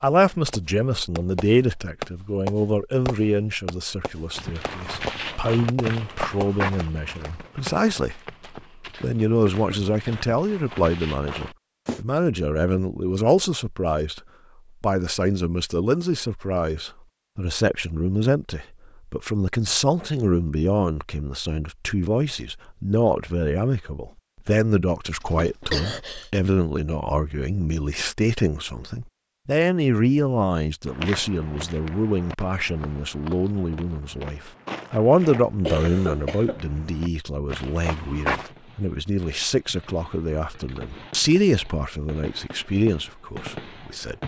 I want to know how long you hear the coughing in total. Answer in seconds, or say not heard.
3 s.